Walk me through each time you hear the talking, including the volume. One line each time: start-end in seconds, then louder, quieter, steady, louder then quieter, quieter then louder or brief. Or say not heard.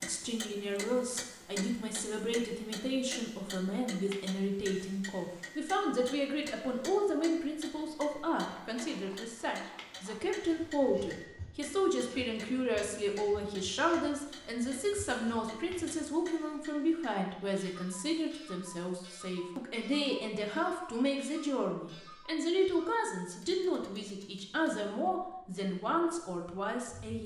0.0-27.2 steady.